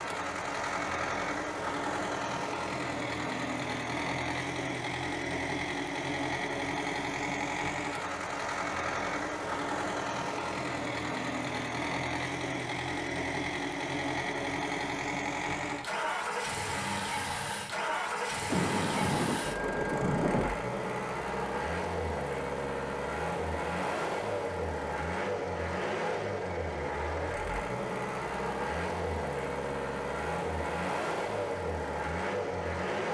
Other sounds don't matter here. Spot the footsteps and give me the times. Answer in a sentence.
You can't hear the footsteps here.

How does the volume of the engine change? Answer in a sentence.
The volume of the engine stays about the same.